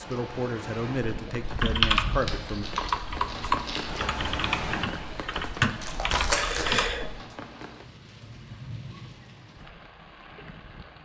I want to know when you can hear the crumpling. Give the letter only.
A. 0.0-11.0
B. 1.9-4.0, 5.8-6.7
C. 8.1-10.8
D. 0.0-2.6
B.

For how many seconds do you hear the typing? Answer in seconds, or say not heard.
6 s.